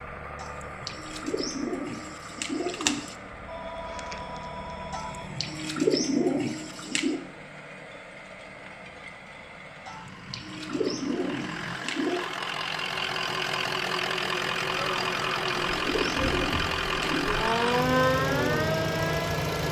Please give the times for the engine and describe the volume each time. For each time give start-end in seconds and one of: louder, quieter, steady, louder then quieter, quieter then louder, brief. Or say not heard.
0.0-19.6 louder.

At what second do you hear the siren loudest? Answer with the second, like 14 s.
18 s.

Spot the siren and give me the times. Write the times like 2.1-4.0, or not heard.
14.7-19.6.